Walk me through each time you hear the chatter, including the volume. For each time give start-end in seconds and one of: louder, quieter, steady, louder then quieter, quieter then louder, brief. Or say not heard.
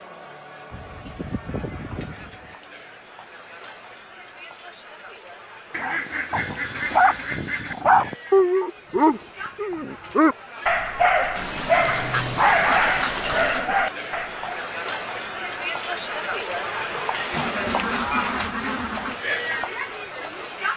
0.0-20.7 louder.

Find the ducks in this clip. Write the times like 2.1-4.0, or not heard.
0.7-2.5, 5.7-7.8, 11.3-13.7, 17.3-19.2.